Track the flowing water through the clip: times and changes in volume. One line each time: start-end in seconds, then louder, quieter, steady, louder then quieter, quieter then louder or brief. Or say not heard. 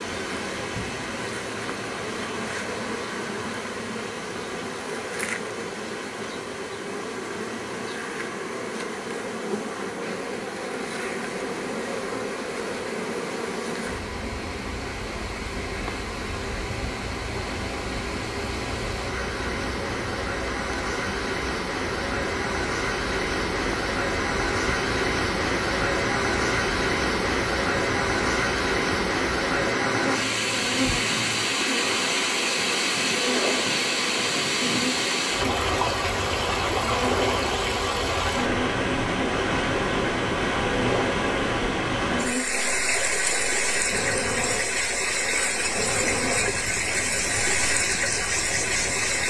0.0-49.2 louder.